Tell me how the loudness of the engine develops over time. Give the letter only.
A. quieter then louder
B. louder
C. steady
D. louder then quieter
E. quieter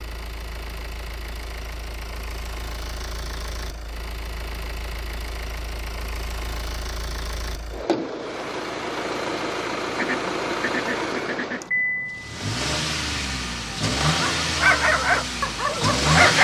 B.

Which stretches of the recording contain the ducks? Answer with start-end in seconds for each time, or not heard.
9.9-11.8.